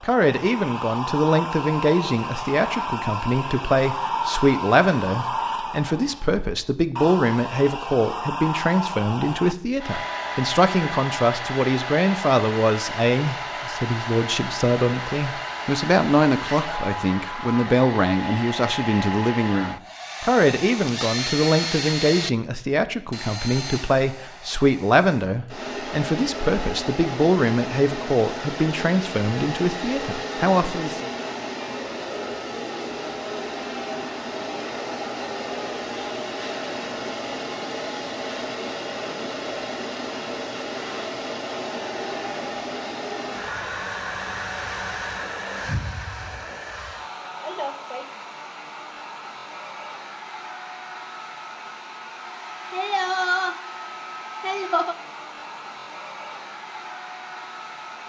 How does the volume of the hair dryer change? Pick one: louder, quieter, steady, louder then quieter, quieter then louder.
steady.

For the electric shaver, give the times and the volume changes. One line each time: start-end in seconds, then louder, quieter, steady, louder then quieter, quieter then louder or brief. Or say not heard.
not heard.